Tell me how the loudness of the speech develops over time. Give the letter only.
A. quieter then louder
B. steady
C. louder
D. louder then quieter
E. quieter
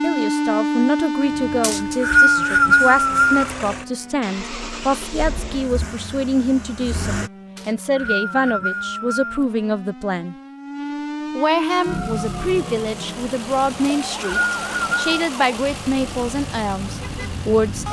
B.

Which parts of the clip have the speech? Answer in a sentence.
You can hear the speech from 0.0 to 10.3 s and from 11.3 to 17.8 s.